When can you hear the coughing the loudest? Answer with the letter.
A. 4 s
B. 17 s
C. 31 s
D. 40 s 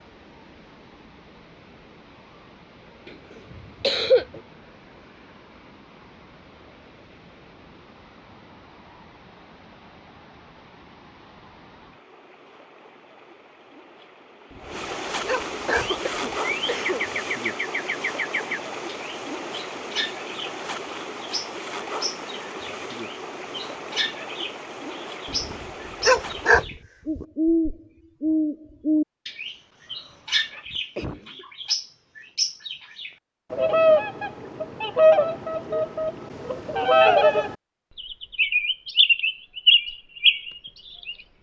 A.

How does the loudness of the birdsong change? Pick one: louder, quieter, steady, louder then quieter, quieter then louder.
louder.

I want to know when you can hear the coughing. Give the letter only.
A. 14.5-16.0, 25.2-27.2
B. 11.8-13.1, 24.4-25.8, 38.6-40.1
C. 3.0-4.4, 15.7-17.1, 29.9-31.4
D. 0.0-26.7
C.